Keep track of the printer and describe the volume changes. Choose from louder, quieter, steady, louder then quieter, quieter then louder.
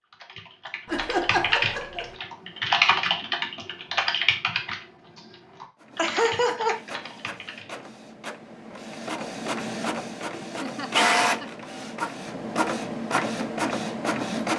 louder.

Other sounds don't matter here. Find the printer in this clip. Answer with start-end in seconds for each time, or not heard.
5.8-14.5.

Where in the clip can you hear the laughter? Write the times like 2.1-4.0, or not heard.
0.8-2.1, 6.0-6.8, 10.6-11.5.